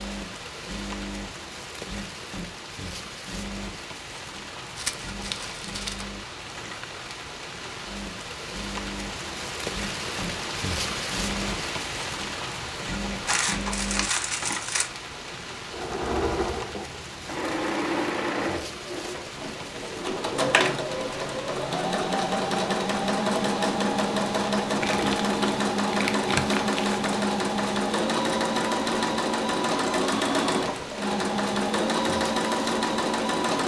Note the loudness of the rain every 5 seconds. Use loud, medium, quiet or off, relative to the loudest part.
medium, loud, loud, medium, medium, medium, medium.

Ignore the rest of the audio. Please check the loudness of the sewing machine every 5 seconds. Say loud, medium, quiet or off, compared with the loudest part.
quiet, quiet, medium, medium, loud, loud, loud.